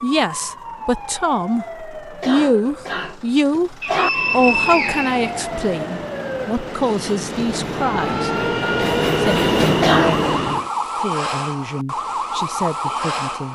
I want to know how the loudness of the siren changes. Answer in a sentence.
The loudness of the siren goes up.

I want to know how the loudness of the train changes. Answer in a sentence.
The volume of the train goes up.